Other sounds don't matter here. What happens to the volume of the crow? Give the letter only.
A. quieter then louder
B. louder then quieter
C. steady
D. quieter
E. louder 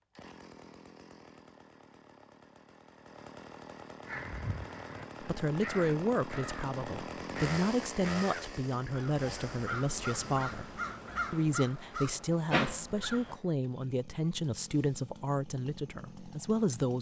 E.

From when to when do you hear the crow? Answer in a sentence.
You can hear the crow from 4.0 to 13.4 s.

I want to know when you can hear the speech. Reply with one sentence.
The speech can be heard from 5.2 to 16.9 s.